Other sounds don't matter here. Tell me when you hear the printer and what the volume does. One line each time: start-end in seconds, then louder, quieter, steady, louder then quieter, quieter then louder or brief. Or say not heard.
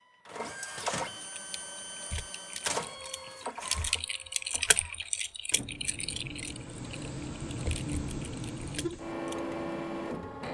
0.0-10.5 quieter then louder.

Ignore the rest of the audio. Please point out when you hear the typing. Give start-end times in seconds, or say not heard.
1.3-9.3.